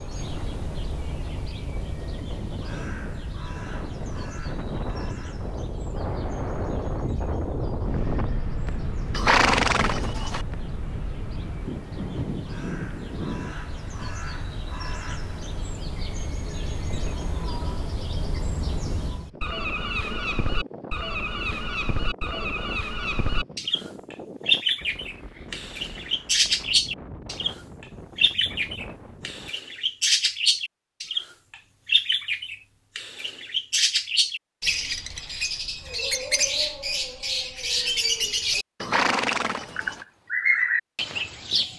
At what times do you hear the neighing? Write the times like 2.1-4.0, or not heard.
9.1-10.4, 38.8-40.0.